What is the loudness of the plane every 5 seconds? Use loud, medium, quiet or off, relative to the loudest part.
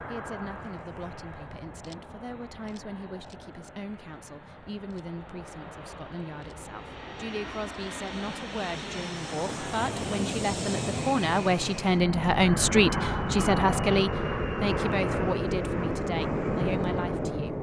quiet, medium, loud, loud.